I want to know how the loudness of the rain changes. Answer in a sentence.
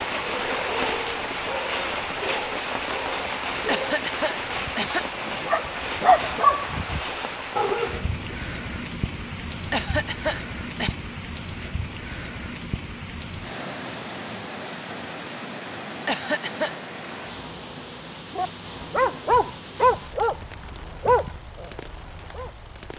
The volume of the rain goes down.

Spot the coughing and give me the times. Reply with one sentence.
You can hear the coughing from 3.6 to 5.0 s, from 9.7 to 10.9 s and from 16.1 to 16.8 s.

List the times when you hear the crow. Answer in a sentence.
You can't hear the crow here.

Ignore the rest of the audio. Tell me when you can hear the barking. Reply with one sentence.
The barking can be heard from 0.2 to 8.3 s and from 18.4 to 22.6 s.